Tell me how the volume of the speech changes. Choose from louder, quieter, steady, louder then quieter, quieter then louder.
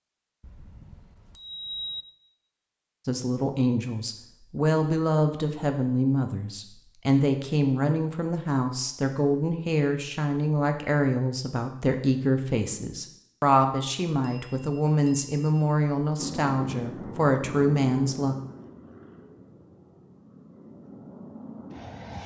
steady.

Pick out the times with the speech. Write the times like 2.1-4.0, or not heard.
3.0-18.4.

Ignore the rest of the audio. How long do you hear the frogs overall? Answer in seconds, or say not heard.
not heard.